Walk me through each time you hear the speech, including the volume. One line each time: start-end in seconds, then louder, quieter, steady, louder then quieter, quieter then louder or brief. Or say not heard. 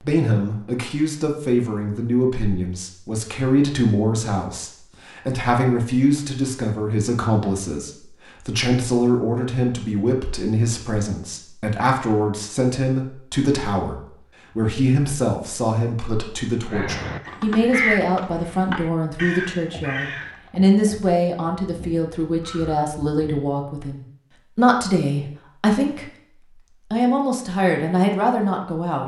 0.0-29.0 steady.